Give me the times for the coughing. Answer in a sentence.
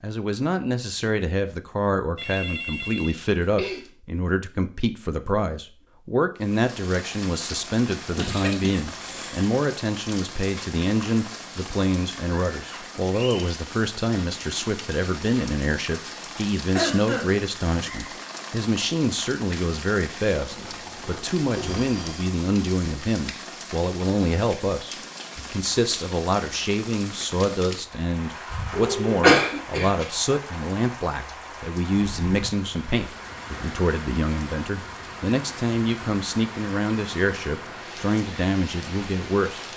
The coughing can be heard from 8.2 to 9.5 s, from 16.8 to 17.9 s and from 28.5 to 29.9 s.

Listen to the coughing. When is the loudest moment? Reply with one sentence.
The volume of the coughing peaks at 29 seconds.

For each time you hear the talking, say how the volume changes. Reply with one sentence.
You can hear the talking from 0.0 to 39.6 s, at a steady volume.